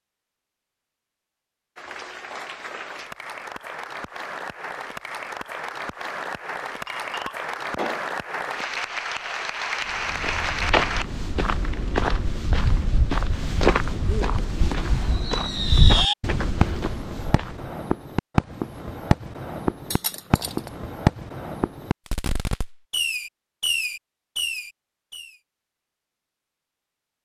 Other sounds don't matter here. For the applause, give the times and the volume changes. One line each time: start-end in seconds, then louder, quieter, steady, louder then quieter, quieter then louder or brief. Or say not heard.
1.8-11.1 louder.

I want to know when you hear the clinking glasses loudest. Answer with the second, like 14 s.
8 s.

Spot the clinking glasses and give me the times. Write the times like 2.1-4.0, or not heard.
6.8-8.1, 19.9-20.7.